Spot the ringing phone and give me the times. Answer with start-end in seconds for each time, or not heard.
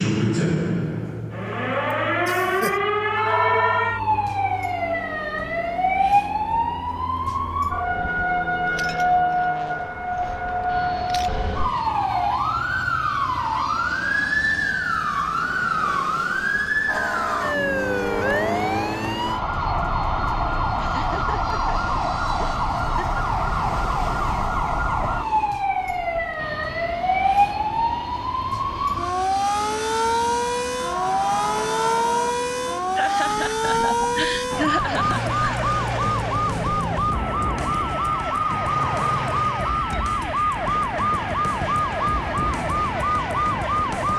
3.1-4.0, 30.8-32.4.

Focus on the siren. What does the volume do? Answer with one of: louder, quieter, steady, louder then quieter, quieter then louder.
steady.